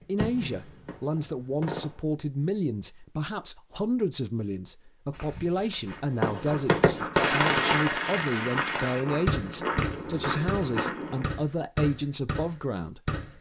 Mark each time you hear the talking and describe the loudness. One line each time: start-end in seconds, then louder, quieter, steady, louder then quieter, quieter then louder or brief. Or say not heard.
0.1-13.2 steady.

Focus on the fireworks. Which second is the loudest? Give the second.
7 s.